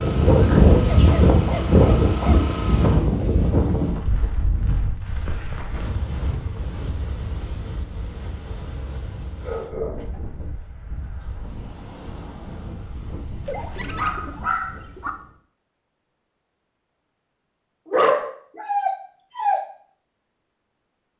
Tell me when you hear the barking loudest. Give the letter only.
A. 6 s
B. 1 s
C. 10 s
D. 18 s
D.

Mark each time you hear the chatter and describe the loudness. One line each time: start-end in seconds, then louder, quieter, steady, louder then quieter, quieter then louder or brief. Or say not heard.
not heard.